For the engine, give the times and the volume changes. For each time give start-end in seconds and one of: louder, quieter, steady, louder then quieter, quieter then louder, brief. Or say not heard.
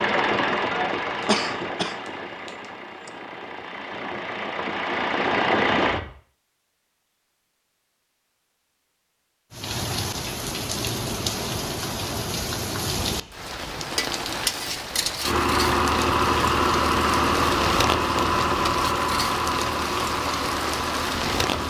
0.0-6.1 quieter then louder
15.2-21.6 quieter.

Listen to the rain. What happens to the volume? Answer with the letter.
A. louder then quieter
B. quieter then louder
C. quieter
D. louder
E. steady
E.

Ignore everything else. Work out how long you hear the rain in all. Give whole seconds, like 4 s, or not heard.
12 s.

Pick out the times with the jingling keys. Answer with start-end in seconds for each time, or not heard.
not heard.